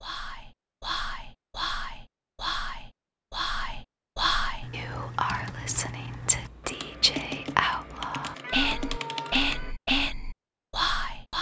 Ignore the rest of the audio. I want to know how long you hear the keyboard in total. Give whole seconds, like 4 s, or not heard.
5 s.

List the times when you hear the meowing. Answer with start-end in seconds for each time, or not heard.
8.4-9.8.